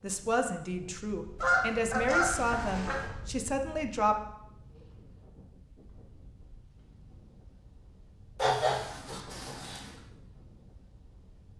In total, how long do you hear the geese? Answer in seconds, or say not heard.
3 s.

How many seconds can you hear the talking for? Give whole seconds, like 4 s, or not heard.
4 s.